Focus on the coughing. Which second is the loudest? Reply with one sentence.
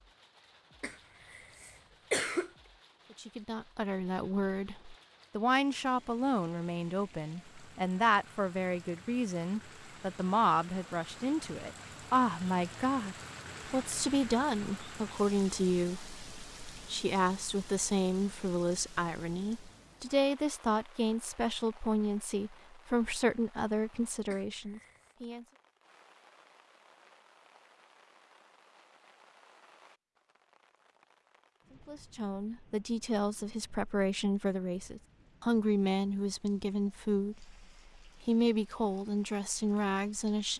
The volume of the coughing peaks at 2 seconds.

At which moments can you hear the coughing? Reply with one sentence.
You can hear the coughing from 0.8 to 2.5 s and from 24.3 to 25.1 s.